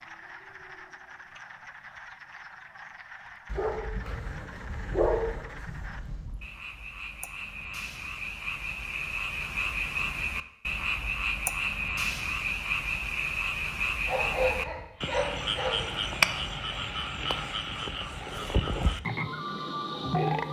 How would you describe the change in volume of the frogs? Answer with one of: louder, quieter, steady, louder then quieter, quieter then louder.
louder.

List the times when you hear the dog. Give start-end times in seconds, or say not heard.
3.5-6.3, 14.1-15.8.